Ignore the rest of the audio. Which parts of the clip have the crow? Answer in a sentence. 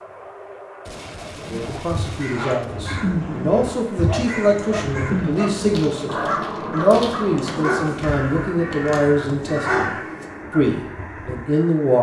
The crow can be heard from 1.4 to 11.4 s.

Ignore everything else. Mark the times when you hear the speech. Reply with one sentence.
The speech can be heard from 1.4 to 11.9 s.